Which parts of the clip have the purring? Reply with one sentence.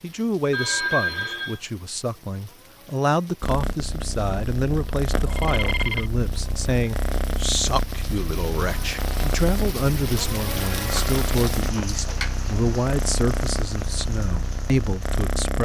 The purring can be heard from 3.4 to 15.5 s.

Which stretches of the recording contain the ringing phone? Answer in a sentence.
You can hear the ringing phone from 0.5 to 1.6 s, from 5.2 to 6.1 s and from 10.8 to 12.3 s.